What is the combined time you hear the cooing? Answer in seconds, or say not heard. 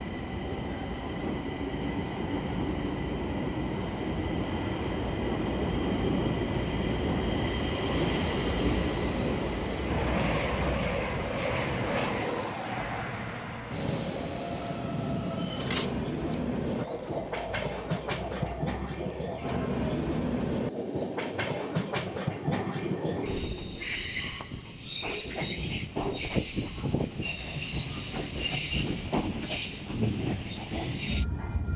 8 s.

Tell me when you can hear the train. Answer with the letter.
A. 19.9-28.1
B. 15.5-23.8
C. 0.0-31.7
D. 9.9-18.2
C.